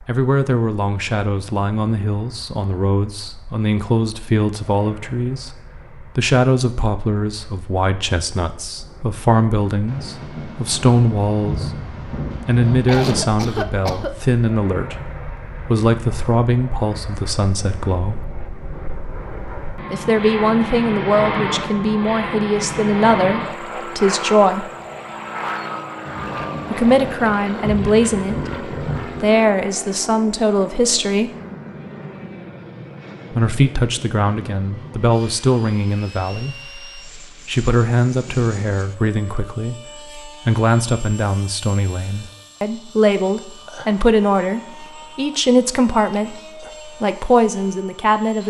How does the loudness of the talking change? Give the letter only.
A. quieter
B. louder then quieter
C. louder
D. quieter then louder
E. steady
E.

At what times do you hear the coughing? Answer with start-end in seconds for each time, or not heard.
12.7-14.1.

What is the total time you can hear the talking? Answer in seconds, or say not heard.
42 s.